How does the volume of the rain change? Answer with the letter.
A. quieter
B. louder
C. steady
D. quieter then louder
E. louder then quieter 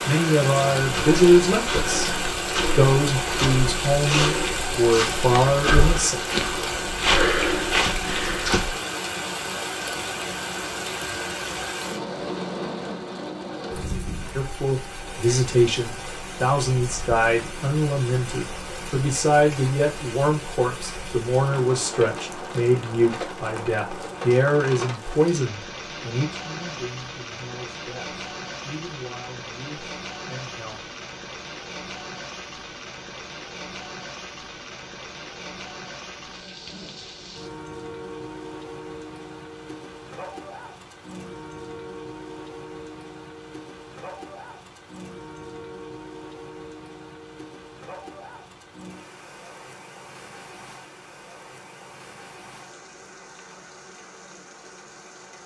A.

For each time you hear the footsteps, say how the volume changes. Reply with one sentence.
You can hear the footsteps from 0.8 to 8.8 s, getting louder.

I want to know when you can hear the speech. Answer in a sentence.
The speech can be heard from 0.1 to 6.2 s and from 14.3 to 30.8 s.